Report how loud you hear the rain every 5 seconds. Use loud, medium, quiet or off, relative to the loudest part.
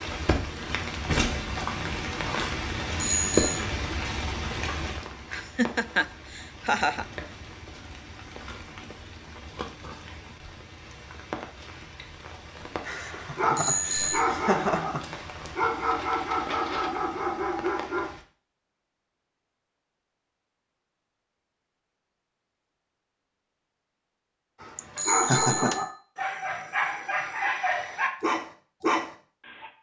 loud, quiet, quiet, quiet, off, off.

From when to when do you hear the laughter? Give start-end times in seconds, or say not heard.
5.3-7.0, 12.8-15.2, 24.8-25.9.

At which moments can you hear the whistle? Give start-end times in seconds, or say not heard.
not heard.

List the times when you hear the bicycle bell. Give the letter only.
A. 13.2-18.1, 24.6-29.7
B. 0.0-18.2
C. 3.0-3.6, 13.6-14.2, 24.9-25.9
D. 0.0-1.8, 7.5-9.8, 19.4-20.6
C.